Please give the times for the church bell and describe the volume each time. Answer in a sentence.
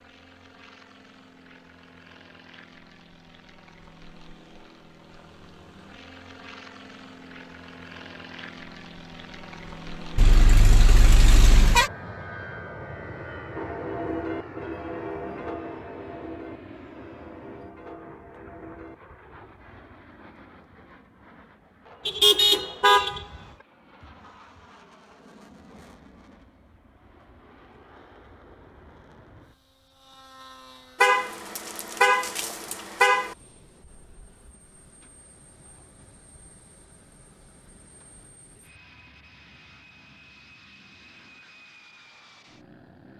The church bell can be heard from 13.6 to 18.9 s, getting quieter.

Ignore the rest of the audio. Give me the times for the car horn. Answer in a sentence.
The car horn can be heard from 10.2 to 11.9 s, from 22.1 to 23.2 s and from 31.0 to 33.4 s.